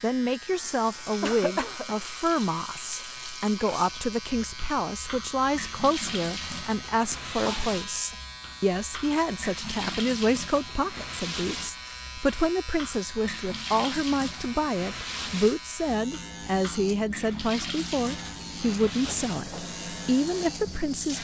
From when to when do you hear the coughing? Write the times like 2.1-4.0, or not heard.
1.2-2.0, 7.5-8.2, 18.8-19.7.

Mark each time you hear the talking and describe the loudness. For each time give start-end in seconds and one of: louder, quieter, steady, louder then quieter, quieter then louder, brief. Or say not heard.
0.0-21.2 steady.